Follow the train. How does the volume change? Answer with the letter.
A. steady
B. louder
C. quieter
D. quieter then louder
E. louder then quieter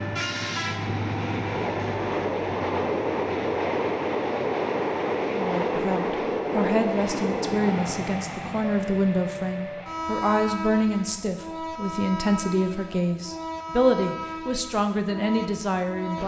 C.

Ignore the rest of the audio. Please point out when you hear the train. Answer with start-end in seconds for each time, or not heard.
0.0-16.2.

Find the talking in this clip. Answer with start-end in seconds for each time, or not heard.
5.3-16.2.